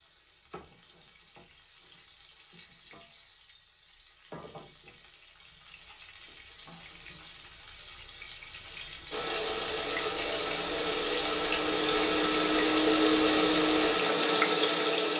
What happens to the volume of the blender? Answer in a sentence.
The loudness of the blender goes up.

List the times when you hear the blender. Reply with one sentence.
The blender can be heard from 9.1 to 15.1 s.